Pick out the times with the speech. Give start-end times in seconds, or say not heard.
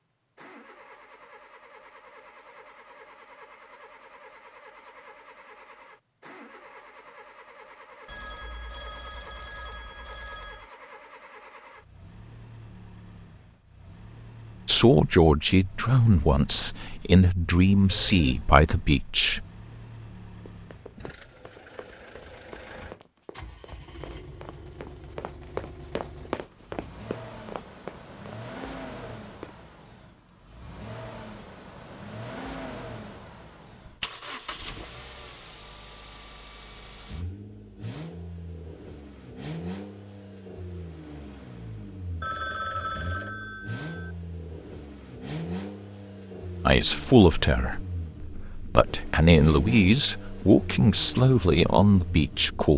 14.7-19.4, 46.6-52.7.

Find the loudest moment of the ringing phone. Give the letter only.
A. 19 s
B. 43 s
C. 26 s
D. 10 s
B.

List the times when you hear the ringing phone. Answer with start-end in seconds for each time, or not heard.
8.1-10.7, 17.9-18.6, 42.2-44.1.